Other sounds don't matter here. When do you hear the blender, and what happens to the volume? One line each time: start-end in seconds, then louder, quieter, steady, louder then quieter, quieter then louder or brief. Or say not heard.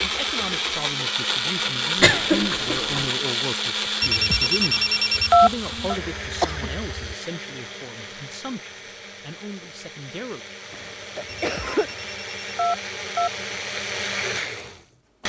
0.0-15.2 quieter then louder.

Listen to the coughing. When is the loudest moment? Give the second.
2 s.